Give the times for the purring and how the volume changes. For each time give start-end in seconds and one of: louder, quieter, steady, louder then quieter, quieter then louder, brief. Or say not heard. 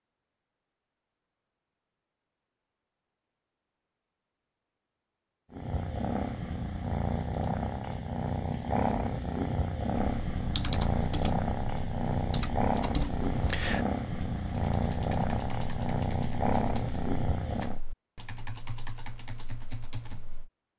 5.5-17.8 steady.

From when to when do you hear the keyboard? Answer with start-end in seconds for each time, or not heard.
9.9-20.5.